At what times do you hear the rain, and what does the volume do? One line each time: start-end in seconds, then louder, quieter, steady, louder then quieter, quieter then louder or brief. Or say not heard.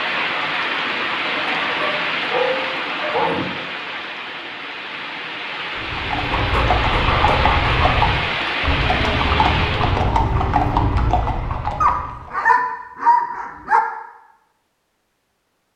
0.0-10.2 quieter then louder.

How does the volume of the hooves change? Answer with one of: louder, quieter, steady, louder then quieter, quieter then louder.
steady.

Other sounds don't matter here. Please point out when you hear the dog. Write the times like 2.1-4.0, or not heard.
1.6-3.5, 6.3-8.0, 11.8-13.8.